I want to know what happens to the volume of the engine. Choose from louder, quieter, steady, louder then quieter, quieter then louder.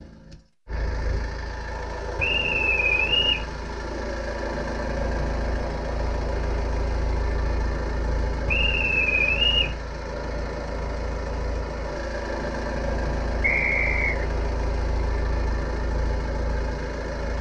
steady.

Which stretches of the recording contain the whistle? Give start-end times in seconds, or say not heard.
2.1-3.5, 8.4-9.8, 13.4-14.2.